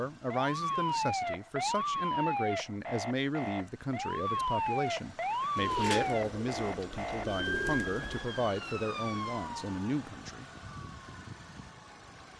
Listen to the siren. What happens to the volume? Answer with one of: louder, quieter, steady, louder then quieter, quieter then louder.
quieter.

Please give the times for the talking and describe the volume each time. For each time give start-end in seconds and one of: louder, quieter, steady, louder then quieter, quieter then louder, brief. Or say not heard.
0.0-10.5 steady.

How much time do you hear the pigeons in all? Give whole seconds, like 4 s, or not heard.
3 s.